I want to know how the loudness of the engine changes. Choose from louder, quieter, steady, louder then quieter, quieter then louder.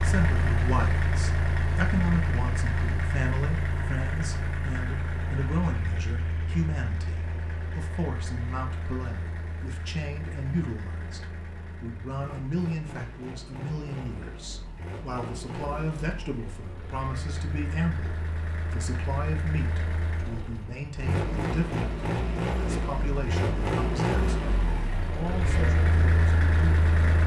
quieter then louder.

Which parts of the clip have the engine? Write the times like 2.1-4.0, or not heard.
0.0-27.2.